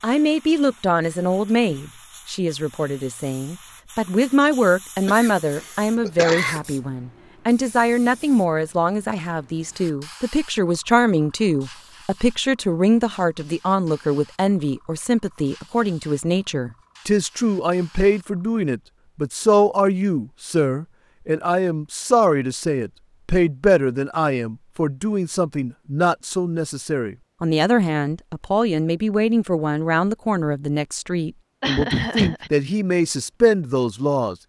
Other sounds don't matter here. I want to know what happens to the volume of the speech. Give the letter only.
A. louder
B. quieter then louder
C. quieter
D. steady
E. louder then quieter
D.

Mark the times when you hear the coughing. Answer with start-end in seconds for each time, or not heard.
5.0-6.6, 31.6-32.5.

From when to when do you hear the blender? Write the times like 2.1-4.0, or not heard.
not heard.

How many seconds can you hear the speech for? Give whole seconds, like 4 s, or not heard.
34 s.